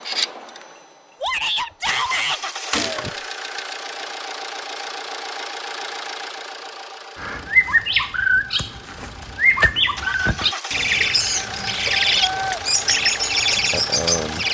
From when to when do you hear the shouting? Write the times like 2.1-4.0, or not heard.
1.2-2.4, 11.3-12.6.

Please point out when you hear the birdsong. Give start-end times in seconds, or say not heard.
7.2-14.4.